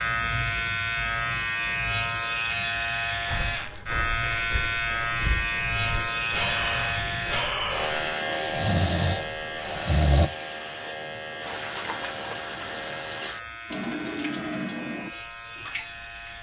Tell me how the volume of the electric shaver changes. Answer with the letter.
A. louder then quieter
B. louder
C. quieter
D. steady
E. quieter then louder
C.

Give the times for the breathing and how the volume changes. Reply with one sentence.
You can hear the breathing from 3.2 to 10.3 s, getting louder.